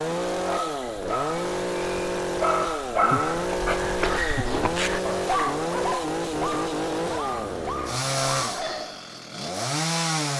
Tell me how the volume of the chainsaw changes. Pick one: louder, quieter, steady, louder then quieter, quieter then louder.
steady.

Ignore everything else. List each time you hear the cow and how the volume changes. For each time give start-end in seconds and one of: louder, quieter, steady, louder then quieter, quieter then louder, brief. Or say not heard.
not heard.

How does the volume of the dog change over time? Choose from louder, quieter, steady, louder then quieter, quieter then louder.
louder then quieter.